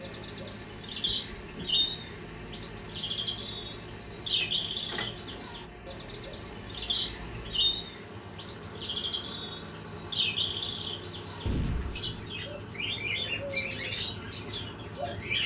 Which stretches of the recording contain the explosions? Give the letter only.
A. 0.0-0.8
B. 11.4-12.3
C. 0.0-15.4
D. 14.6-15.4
B.